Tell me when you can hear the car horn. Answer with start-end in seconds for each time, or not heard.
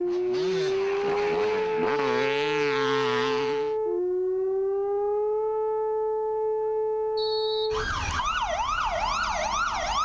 not heard.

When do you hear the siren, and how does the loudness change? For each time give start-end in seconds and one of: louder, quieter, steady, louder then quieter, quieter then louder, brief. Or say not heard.
0.0-9.9 steady.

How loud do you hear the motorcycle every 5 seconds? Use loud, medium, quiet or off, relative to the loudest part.
loud, off.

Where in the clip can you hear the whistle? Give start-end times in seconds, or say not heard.
7.2-8.2.